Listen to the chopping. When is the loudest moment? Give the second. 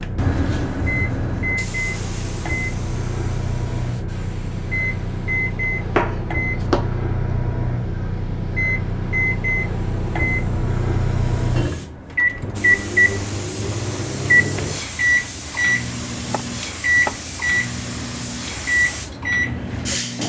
6 s.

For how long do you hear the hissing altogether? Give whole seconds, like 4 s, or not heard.
20 s.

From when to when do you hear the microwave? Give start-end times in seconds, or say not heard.
0.0-20.2.